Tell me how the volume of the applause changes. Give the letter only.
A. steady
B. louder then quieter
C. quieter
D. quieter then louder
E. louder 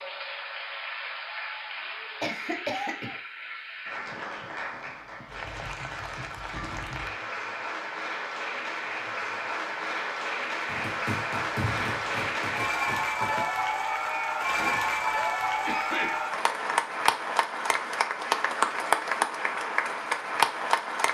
E.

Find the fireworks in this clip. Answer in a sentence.
The fireworks can be heard from 10.7 to 13.4 s.